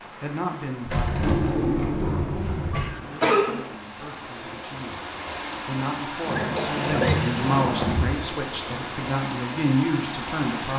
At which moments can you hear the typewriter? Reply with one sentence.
You can't hear the typewriter here.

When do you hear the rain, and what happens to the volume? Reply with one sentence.
The rain can be heard from 0.0 to 10.7 s, getting louder.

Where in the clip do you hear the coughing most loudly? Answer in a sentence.
The volume of the coughing peaks at 3 seconds.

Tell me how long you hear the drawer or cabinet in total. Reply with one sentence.
You can hear the drawer or cabinet for 4 seconds altogether.